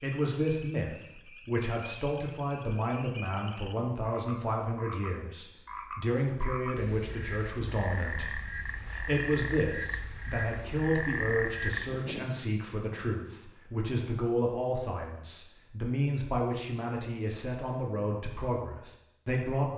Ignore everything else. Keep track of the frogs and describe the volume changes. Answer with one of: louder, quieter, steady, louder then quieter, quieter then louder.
louder.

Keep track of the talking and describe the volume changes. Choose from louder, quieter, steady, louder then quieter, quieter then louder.
steady.